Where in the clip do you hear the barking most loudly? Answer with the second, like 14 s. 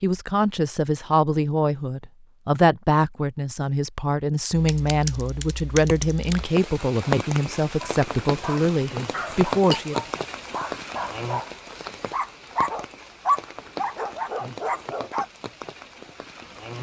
13 s.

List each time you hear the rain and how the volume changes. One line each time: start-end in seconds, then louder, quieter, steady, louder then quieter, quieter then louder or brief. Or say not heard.
6.3-16.7 quieter.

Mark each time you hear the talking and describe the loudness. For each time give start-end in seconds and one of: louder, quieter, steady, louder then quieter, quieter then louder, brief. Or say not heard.
0.0-9.9 steady.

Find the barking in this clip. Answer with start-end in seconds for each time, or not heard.
7.8-15.2.